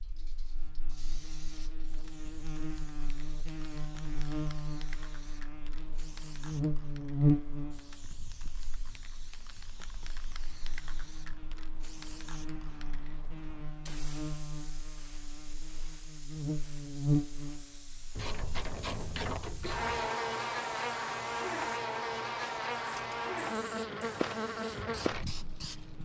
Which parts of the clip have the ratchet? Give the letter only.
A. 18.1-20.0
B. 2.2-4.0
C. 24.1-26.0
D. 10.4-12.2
A.